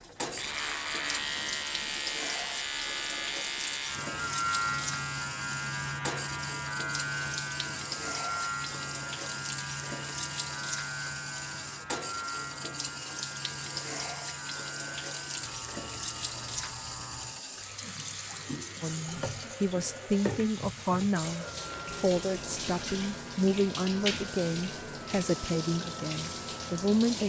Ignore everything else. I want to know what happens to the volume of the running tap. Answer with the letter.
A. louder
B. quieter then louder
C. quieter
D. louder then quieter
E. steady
E.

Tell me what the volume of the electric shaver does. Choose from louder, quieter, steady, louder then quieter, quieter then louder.
quieter.